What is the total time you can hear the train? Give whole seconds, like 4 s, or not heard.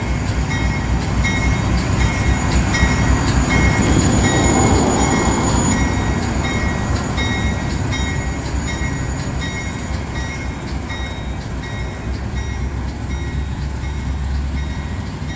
15 s.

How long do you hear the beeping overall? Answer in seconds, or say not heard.
2 s.